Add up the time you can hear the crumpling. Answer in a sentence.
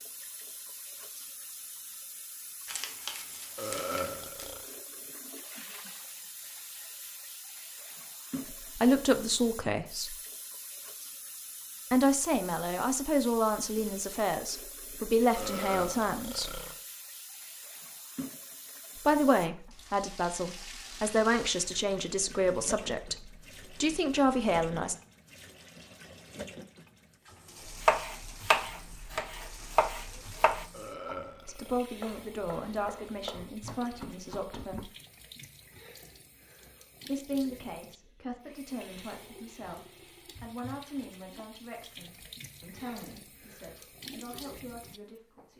The crumpling can be heard for 2 seconds in total.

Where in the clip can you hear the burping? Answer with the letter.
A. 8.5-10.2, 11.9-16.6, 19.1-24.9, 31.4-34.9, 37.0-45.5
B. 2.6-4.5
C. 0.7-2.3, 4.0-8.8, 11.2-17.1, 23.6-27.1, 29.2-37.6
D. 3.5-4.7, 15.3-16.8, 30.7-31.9
D.